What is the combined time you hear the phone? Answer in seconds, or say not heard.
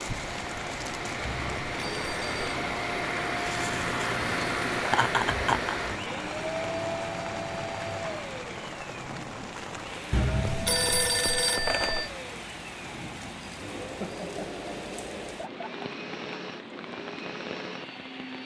3 s.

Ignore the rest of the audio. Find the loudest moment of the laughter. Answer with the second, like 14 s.
5 s.